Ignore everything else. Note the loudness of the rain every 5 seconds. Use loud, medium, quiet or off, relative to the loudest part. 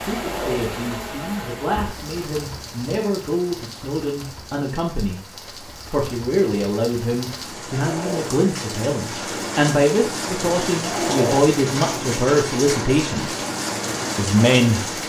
medium, medium, loud.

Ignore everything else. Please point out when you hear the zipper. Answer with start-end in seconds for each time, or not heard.
0.1-0.7, 7.8-8.3, 10.8-11.6.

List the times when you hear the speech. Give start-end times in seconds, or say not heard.
0.0-5.2, 5.9-13.4, 14.2-14.8.